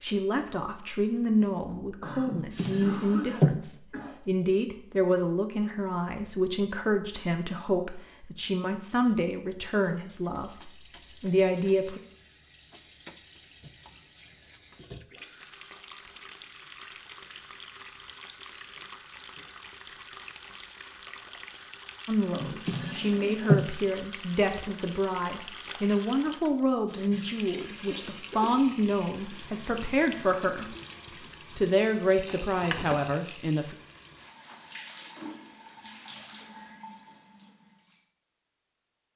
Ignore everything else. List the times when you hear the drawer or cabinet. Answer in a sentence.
The drawer or cabinet can be heard from 2.2 to 3.6 s, from 22.4 to 23.6 s and from 32.2 to 33.0 s.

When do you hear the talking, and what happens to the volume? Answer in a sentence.
You can hear the talking from 0.0 to 12.0 s, at a steady volume; and from 22.1 to 33.8 s, at a steady volume.